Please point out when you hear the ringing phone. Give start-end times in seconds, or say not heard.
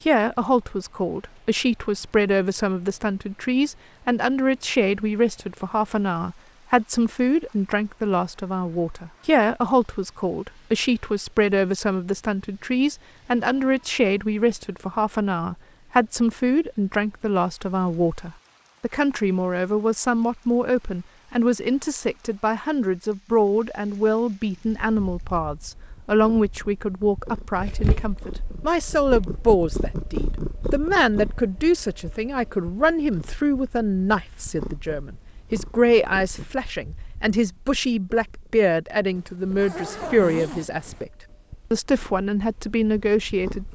not heard.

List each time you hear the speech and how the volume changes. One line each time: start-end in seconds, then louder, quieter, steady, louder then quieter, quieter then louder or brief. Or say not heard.
0.1-41.1 steady
41.7-43.7 brief.